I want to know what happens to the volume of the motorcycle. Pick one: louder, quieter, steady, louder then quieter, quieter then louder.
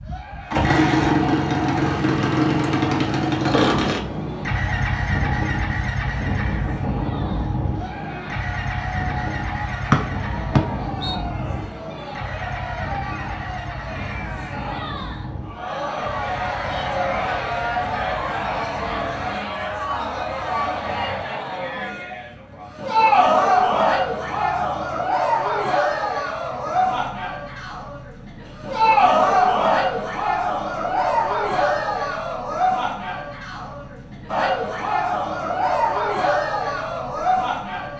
quieter.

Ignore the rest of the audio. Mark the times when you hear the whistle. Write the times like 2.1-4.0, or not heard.
9.9-11.2.